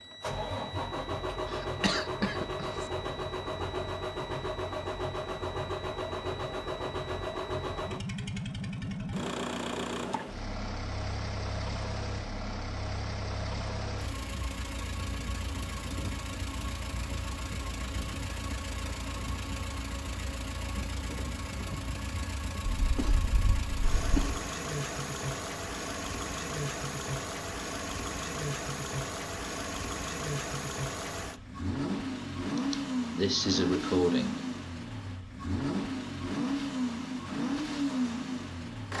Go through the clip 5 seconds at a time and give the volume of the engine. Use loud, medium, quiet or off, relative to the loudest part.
loud, loud, medium, medium, medium, loud, loud, loud.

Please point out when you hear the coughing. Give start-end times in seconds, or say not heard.
1.5-2.9, 22.8-24.4, 32.5-34.4.